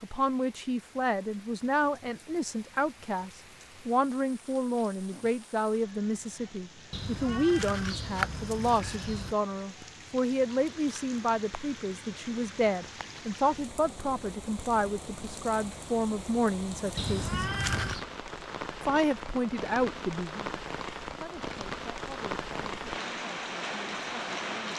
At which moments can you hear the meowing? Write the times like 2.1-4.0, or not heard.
6.9-9.3, 16.9-18.1.